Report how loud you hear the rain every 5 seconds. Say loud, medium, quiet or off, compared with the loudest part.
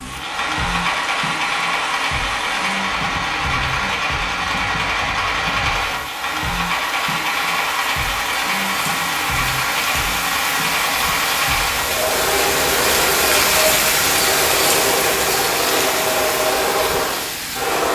quiet, medium, loud, loud.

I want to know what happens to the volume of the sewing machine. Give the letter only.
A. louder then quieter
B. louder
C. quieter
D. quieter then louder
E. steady
E.